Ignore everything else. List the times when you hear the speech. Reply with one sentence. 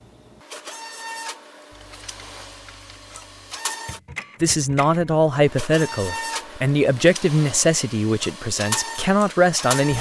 The speech can be heard from 4.4 to 9.9 s.